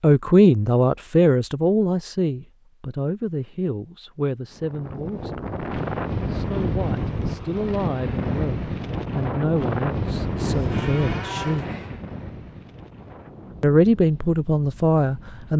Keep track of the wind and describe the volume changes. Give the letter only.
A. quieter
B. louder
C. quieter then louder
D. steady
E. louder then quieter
A.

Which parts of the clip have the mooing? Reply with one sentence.
You can hear the mooing from 10.4 to 12.0 s.